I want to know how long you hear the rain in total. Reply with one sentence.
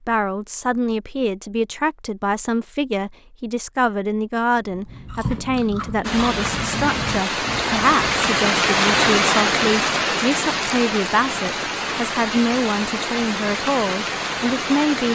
The rain can be heard for 9 seconds in total.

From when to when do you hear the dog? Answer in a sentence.
You can't hear the dog here.